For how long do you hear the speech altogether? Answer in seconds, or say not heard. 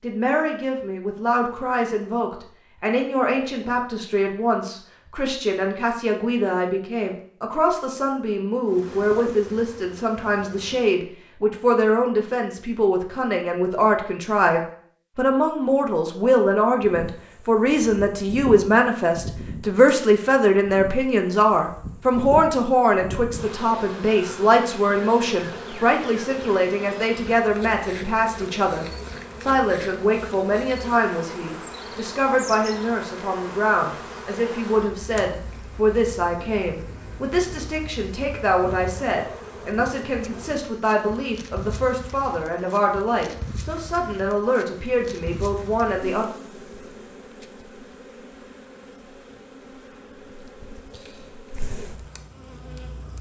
46 s.